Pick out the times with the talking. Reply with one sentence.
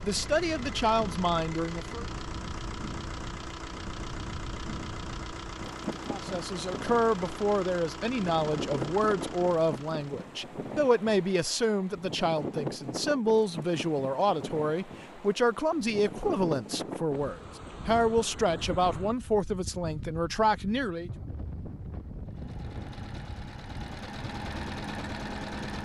The talking can be heard from 0.0 to 2.0 s and from 6.0 to 21.1 s.